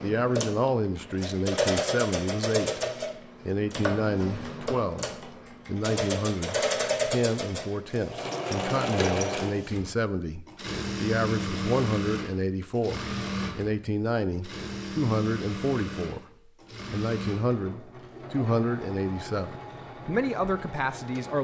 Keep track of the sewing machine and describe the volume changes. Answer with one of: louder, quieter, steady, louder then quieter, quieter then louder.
quieter.